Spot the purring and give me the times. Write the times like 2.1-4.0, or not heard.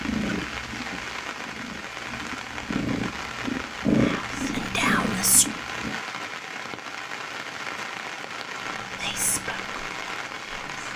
0.0-6.0.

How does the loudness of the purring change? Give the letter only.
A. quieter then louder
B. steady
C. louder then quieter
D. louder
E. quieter
C.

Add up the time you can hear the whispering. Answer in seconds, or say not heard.
4 s.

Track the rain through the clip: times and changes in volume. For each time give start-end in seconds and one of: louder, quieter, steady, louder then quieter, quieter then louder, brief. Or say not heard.
0.0-10.9 steady.